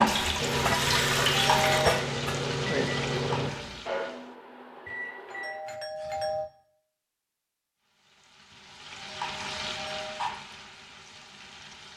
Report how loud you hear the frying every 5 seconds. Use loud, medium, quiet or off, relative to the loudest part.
loud, medium, medium.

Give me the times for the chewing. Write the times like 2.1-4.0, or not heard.
not heard.